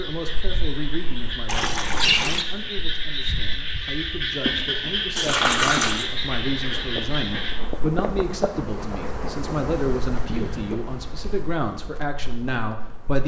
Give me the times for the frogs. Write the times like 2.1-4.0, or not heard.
0.0-7.6.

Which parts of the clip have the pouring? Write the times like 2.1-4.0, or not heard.
1.4-2.5, 5.2-6.0, 10.2-10.8.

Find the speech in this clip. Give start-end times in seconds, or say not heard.
0.0-13.2.